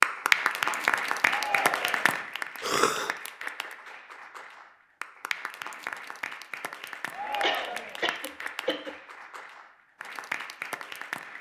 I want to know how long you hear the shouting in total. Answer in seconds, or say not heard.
2 s.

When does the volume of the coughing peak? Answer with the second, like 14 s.
3 s.